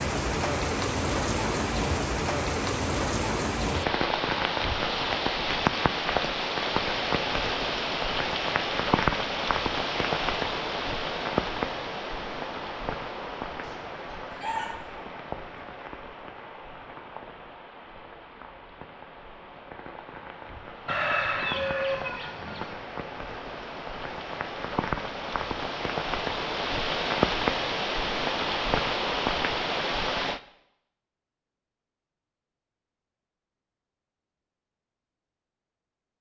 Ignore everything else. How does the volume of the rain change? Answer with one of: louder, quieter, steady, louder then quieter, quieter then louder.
quieter then louder.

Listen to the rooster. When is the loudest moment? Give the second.
21 s.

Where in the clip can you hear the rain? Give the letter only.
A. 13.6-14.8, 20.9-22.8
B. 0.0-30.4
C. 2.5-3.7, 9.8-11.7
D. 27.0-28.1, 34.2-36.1
B.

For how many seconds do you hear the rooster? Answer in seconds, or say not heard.
3 s.